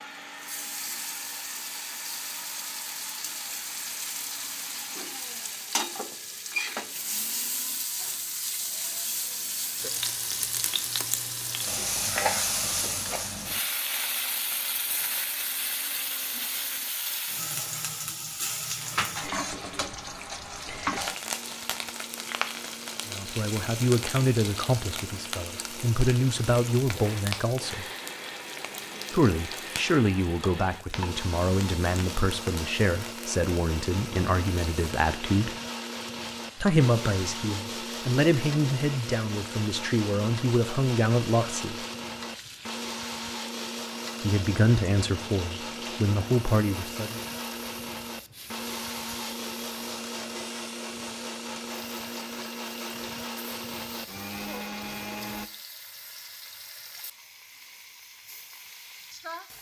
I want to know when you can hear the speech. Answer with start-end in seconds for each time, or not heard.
23.1-27.9, 29.1-35.5, 36.6-41.9, 44.2-47.2.